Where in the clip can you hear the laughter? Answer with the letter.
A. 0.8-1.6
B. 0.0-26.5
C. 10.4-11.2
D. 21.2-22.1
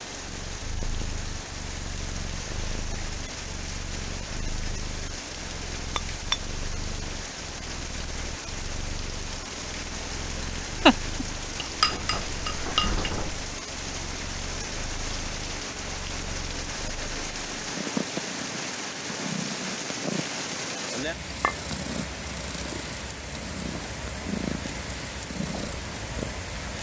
C.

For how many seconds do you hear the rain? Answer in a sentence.
You can hear the rain for 27 seconds altogether.